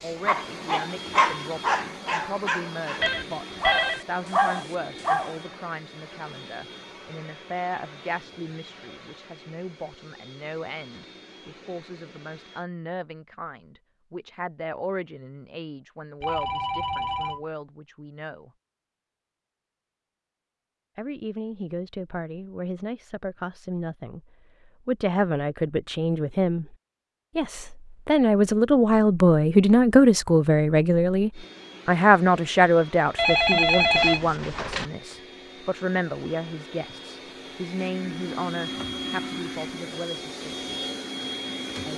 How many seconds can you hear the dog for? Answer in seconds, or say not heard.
5 s.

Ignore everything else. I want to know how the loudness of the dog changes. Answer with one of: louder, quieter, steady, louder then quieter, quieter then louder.
quieter then louder.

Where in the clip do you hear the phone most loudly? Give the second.
34 s.